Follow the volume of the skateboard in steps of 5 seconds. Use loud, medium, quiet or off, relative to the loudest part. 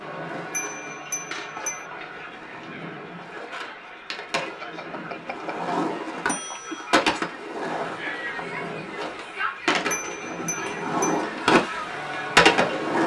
quiet, medium, loud.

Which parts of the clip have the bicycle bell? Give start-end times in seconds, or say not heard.
0.5-1.9, 4.6-6.8, 9.9-11.2.